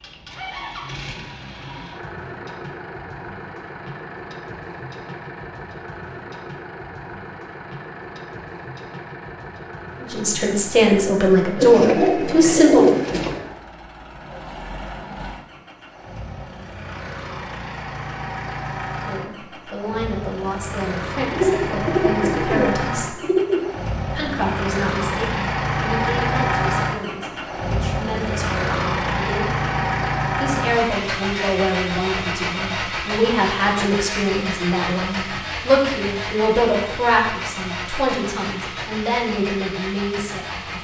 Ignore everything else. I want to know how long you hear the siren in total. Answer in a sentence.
The siren can't be heard in this clip.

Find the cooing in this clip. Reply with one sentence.
You can hear the cooing from 11.6 to 13.4 s and from 21.2 to 23.6 s.